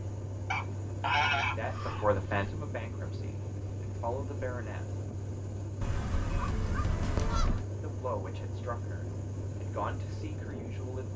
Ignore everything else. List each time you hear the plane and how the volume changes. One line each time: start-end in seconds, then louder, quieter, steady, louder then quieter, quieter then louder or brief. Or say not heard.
0.0-11.1 steady.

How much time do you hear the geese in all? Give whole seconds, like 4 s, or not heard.
4 s.